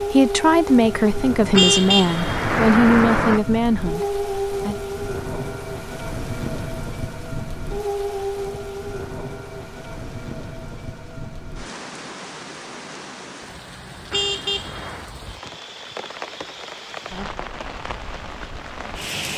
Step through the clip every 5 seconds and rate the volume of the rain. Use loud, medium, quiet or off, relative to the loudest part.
loud, loud, medium, medium.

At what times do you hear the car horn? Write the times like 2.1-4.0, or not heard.
1.5-3.4, 14.1-15.1.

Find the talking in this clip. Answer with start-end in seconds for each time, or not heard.
0.0-4.8.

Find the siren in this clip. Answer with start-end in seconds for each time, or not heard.
not heard.